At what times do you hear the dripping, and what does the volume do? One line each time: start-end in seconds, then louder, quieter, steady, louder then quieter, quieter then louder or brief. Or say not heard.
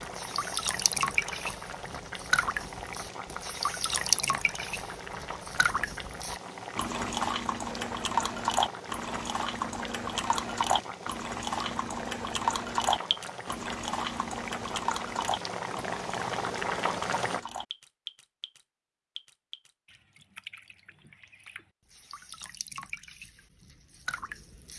0.0-24.7 quieter.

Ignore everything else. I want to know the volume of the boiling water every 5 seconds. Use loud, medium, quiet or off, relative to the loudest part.
medium, medium, medium, loud, off.